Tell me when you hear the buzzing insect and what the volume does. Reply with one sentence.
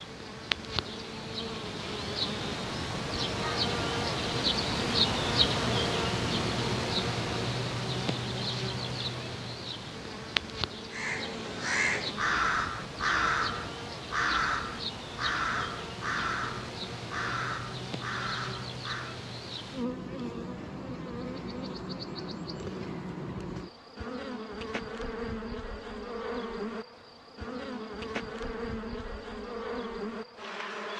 The buzzing insect can be heard from 0.0 to 30.9 s, getting quieter.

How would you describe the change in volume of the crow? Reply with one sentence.
The loudness of the crow goes down.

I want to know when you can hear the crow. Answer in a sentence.
You can hear the crow from 10.9 to 19.2 s.